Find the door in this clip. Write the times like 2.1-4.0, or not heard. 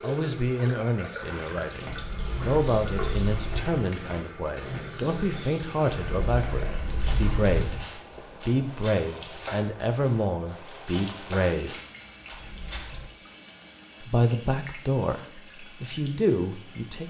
1.9-3.8, 5.9-7.8, 12.3-13.1.